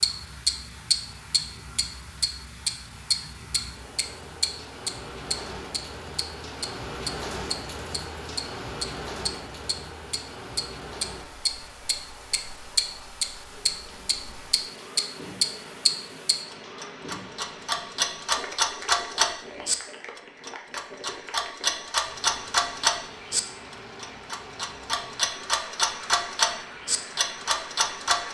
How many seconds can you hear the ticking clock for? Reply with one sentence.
You can hear the ticking clock for 28 seconds altogether.